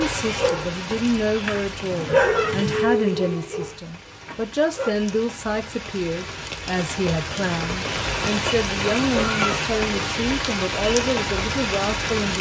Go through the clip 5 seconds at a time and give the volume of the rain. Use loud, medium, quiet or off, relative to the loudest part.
medium, loud, loud.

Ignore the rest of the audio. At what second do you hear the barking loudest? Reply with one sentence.
The loudest moment of the barking is at 2 seconds.